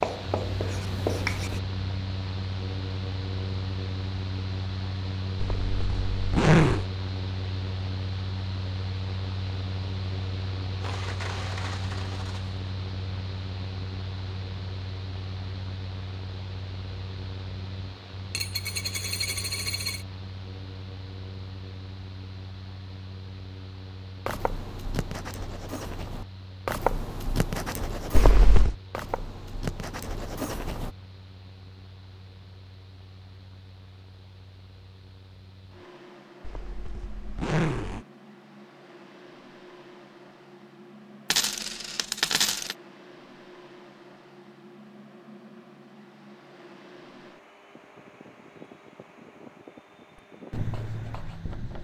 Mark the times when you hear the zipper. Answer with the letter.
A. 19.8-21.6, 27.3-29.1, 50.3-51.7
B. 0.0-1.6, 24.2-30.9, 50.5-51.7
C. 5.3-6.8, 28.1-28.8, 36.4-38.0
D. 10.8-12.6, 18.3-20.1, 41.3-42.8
C.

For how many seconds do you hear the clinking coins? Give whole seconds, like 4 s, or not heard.
5 s.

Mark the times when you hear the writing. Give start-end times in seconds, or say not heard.
0.0-1.6, 24.2-30.9, 50.5-51.7.